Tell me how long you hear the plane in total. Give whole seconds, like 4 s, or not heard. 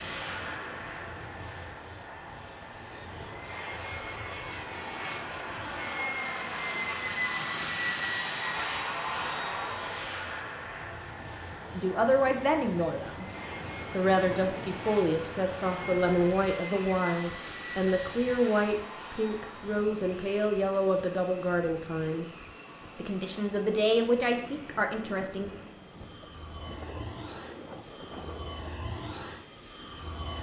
30 s.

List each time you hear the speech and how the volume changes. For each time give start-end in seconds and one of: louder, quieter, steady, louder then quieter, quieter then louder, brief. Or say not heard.
11.8-13.2 brief
13.9-25.5 steady.